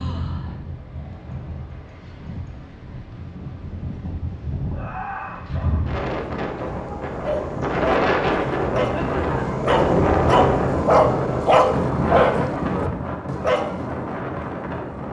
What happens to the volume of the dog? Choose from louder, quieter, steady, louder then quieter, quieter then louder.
louder then quieter.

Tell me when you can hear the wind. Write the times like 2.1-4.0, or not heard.
0.0-15.0.